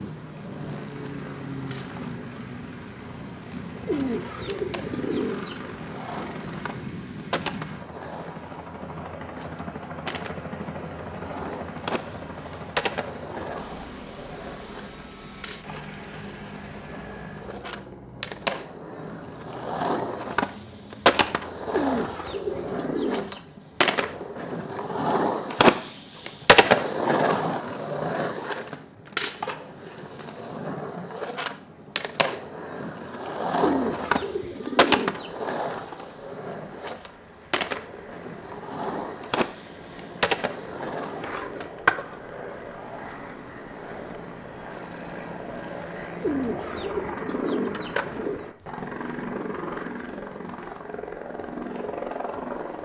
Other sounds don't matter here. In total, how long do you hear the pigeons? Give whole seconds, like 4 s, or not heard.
8 s.